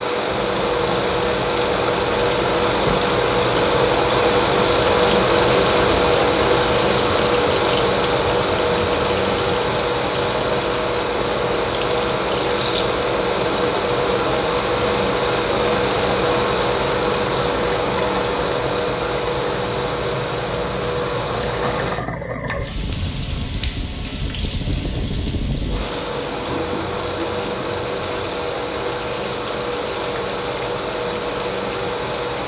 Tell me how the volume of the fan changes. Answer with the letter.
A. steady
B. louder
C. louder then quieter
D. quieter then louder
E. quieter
E.